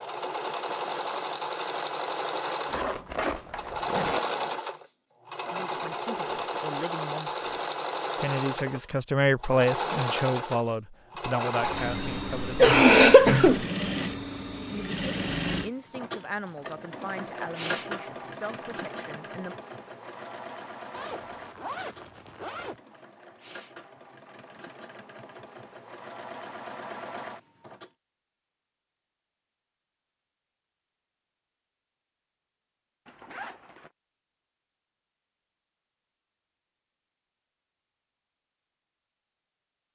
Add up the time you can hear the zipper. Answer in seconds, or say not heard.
4 s.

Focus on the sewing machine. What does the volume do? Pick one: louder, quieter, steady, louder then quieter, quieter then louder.
quieter.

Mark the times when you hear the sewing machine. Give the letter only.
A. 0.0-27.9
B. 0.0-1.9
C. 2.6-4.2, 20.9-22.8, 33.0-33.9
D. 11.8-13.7
A.